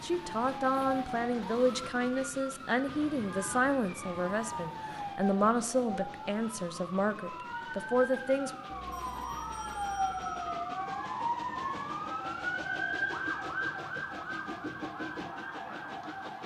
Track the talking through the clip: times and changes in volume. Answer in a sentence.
The talking can be heard from 0.0 to 8.5 s, at a steady volume.